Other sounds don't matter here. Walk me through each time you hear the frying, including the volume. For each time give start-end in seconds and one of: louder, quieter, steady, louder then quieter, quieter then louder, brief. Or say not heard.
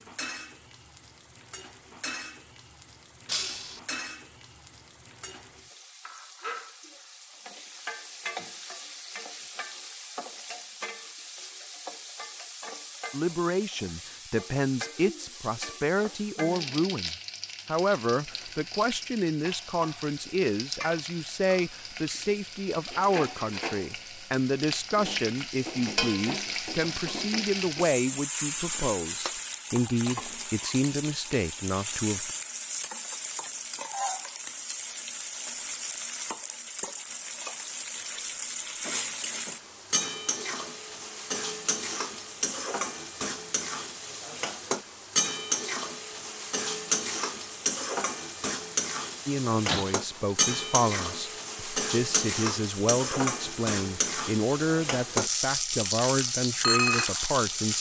0.0-57.7 louder.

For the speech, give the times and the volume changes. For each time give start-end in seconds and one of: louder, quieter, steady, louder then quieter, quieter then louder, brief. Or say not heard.
13.1-32.3 steady
49.2-57.7 steady.